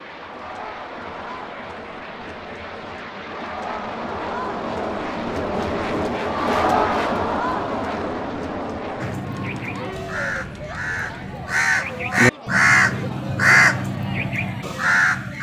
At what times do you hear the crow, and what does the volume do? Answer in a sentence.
The crow can be heard from 9.0 to 15.3 s, getting louder then quieter.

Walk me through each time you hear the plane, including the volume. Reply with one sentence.
The plane can be heard from 0.0 to 11.4 s, getting louder then quieter.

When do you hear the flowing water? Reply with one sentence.
The flowing water can't be heard in this clip.